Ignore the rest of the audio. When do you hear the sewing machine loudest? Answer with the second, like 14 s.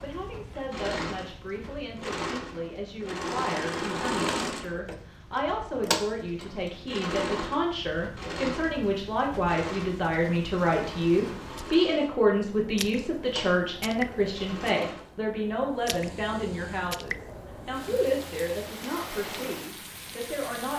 4 s.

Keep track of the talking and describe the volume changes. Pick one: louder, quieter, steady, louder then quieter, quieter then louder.
louder then quieter.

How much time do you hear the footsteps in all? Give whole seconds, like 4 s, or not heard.
not heard.